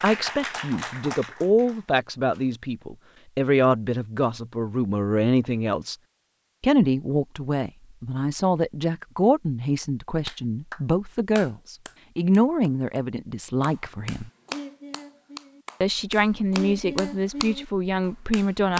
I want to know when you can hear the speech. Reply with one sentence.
You can hear the speech from 0.0 to 6.0 s, from 6.6 to 14.3 s and from 15.8 to 18.7 s.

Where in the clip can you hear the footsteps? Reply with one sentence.
You can't hear the footsteps here.